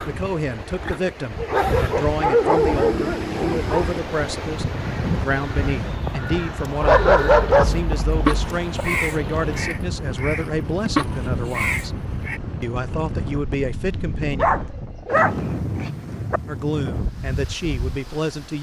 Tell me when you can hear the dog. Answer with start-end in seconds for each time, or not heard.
1.4-3.9, 6.8-8.8, 14.3-16.4.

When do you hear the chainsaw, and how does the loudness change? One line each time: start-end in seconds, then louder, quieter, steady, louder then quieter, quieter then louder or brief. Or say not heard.
not heard.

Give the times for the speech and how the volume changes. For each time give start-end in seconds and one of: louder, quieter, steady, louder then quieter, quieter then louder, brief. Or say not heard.
0.0-11.9 steady
12.6-14.5 brief
16.4-18.5 brief.